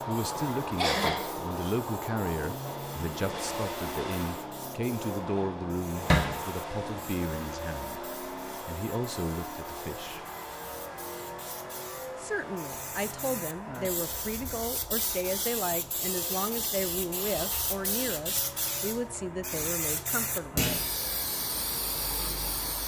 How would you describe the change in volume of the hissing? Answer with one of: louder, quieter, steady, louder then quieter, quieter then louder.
louder.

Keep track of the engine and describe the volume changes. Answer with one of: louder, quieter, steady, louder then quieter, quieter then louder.
quieter.